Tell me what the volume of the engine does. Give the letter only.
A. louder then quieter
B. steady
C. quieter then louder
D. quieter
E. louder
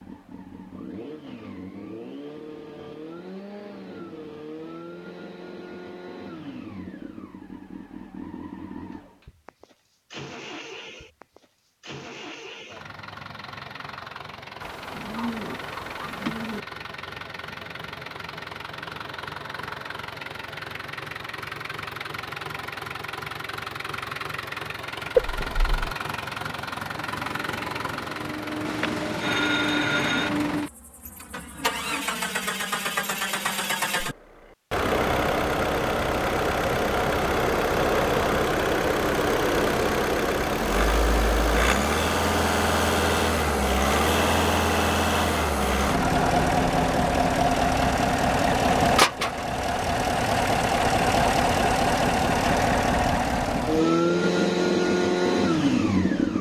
E.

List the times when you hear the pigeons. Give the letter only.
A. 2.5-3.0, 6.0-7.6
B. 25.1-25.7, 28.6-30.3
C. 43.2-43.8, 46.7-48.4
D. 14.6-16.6
D.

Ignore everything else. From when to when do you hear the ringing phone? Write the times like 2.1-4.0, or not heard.
25.1-25.7, 28.6-30.3.